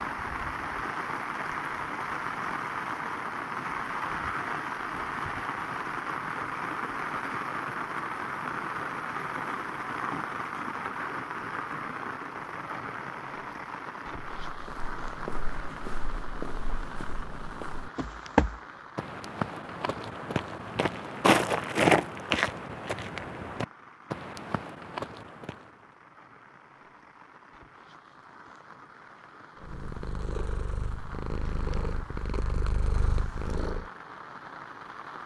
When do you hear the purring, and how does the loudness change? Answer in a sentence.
You can hear the purring from 29.6 to 33.9 s, at a steady volume.